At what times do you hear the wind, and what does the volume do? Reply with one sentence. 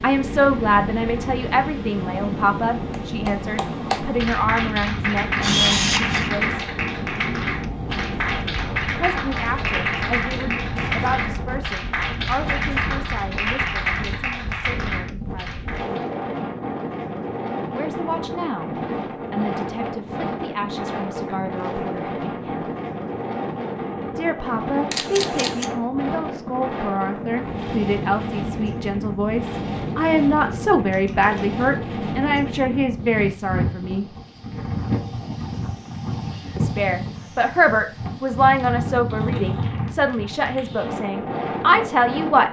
You can hear the wind from 0.0 to 42.4 s, at a steady volume.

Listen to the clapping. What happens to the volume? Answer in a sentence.
The loudness of the clapping stays about the same.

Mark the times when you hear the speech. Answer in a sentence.
You can hear the speech from 0.0 to 6.5 s, from 8.9 to 15.6 s, from 17.7 to 22.7 s, from 24.1 to 34.0 s and from 36.5 to 42.4 s.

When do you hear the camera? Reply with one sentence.
The camera can be heard from 5.4 to 6.3 s, from 24.9 to 25.7 s and from 30.9 to 31.4 s.